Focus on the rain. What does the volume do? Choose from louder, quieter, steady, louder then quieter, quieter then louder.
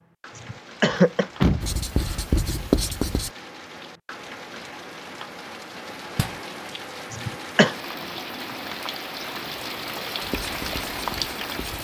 louder.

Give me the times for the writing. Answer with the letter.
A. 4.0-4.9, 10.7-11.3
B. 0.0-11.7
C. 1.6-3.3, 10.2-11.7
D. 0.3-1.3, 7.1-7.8
C.